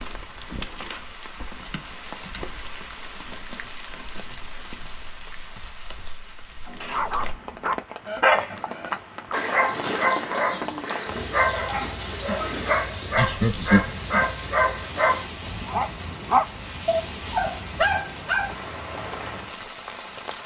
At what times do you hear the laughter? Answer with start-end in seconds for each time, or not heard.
13.2-13.9.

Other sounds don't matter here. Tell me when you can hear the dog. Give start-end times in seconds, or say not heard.
6.7-18.6.